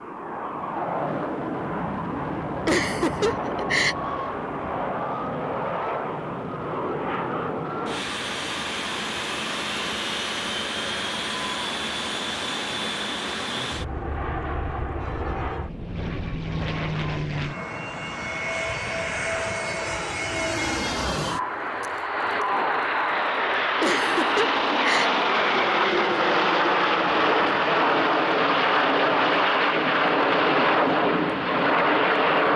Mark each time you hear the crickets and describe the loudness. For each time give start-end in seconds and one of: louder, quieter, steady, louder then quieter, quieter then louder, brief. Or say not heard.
not heard.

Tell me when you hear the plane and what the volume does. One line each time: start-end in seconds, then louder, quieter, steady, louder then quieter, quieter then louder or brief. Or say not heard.
0.0-32.5 louder.